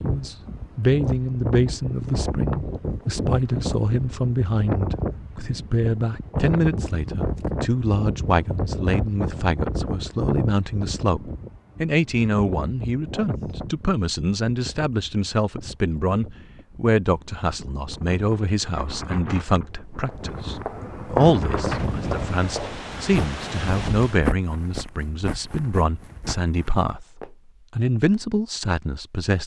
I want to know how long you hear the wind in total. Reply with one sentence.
You can hear the wind for 24 seconds altogether.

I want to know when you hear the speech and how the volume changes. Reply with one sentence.
You can hear the speech from 0.0 to 29.4 s, at a steady volume.